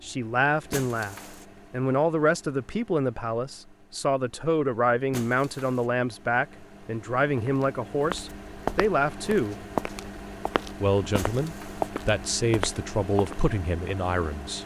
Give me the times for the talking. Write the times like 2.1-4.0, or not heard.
0.0-9.6, 10.8-14.6.